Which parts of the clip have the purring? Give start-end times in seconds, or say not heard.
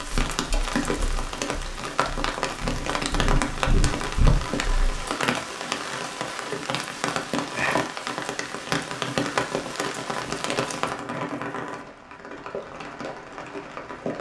0.1-5.1.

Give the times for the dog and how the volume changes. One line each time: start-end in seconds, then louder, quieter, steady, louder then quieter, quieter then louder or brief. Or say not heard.
not heard.